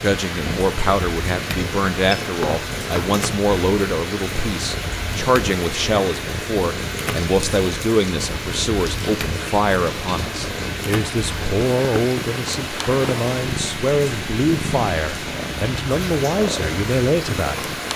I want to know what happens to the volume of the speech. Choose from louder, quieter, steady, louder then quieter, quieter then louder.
steady.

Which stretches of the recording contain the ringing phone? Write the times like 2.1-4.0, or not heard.
2.1-3.1.